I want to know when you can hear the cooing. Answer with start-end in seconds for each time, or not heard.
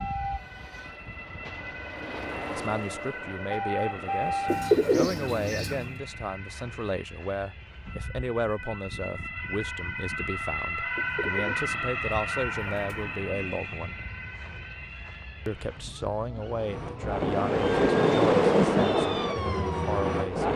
4.5-6.0, 10.9-13.6.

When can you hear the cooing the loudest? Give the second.
5 s.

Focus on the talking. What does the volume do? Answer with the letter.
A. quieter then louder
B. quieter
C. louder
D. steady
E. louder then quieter
D.